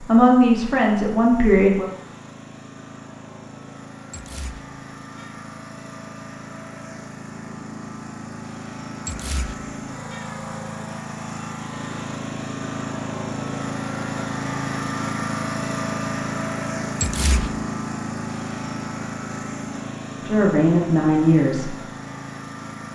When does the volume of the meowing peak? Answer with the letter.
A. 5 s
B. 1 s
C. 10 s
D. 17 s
D.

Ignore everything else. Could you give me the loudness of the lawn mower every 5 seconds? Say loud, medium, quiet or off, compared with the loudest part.
quiet, medium, loud, loud, medium.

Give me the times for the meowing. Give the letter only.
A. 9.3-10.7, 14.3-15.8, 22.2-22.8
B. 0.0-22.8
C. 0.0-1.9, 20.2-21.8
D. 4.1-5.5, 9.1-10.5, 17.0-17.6
D.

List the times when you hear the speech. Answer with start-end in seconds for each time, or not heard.
0.0-1.9, 20.2-21.8.